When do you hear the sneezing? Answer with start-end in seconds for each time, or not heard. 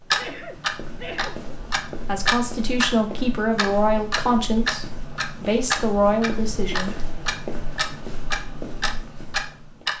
0.1-1.5, 6.6-7.0.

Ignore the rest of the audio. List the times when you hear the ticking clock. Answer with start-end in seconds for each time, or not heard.
0.1-3.0, 3.5-9.9.